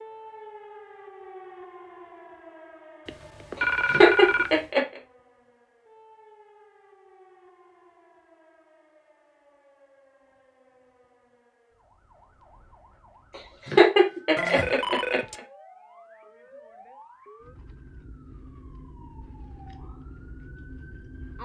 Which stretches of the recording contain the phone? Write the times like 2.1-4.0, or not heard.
3.0-4.6, 14.3-15.4.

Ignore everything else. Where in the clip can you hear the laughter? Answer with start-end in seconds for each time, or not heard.
3.9-4.8, 13.7-15.2.